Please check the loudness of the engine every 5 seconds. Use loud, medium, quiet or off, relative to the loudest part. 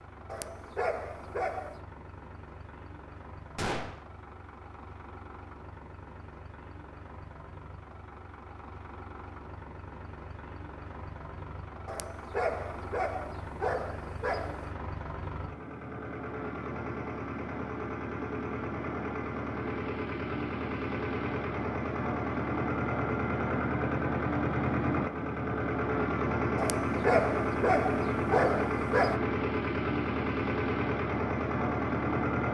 quiet, quiet, quiet, medium, loud, loud, loud.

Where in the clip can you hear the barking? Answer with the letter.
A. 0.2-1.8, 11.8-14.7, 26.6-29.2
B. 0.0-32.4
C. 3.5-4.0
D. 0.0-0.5
A.